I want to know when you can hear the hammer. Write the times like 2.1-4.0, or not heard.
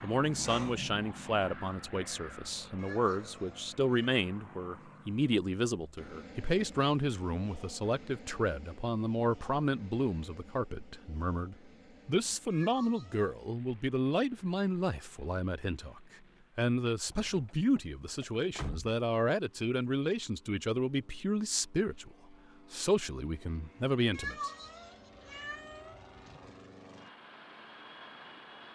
not heard.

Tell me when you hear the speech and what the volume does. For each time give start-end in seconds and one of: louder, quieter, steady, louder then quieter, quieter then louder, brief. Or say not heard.
0.0-24.5 steady.